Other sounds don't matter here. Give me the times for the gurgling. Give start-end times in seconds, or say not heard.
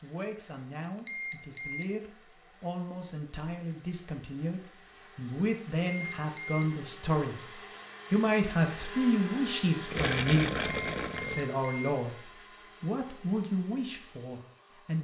9.9-11.4.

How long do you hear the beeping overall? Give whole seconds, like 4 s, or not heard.
4 s.